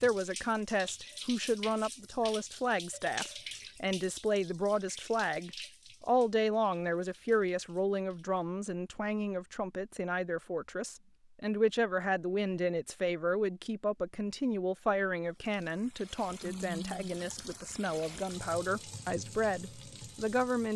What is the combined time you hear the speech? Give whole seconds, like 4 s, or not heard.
21 s.